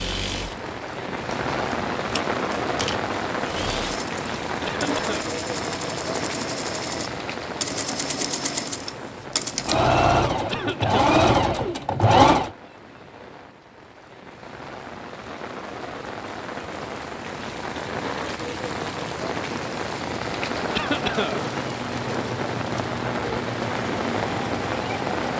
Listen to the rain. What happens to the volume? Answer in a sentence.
The loudness of the rain goes down, then up.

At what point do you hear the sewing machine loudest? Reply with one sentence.
The loudest moment of the sewing machine is at 12 seconds.